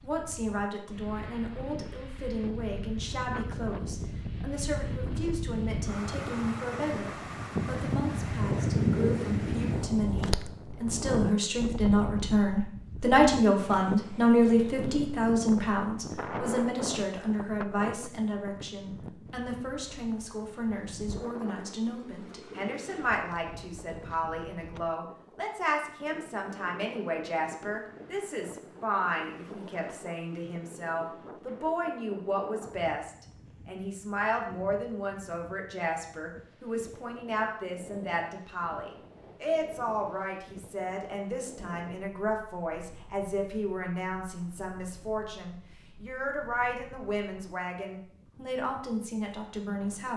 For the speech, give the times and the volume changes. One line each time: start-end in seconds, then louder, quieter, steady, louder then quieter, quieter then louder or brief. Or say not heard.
0.0-50.1 louder then quieter.